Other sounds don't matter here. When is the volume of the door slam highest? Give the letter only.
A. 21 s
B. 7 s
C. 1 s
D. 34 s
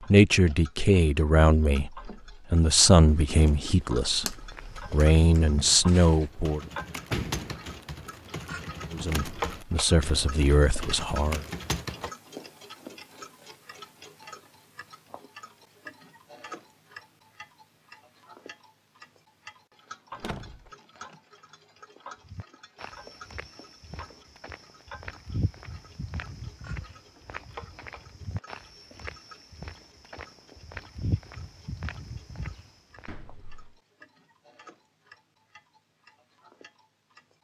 B.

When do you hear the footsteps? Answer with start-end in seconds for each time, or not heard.
4.5-6.3, 22.2-33.1.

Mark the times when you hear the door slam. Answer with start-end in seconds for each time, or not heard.
6.7-7.7, 20.1-20.7, 33.0-33.8.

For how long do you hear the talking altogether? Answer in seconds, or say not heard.
9 s.